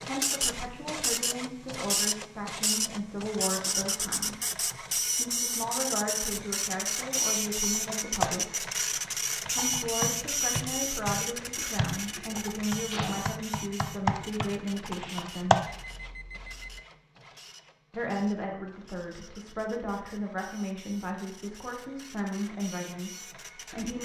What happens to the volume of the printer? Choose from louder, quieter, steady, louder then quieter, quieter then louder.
quieter.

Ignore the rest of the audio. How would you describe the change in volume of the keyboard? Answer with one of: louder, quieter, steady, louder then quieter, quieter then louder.
quieter then louder.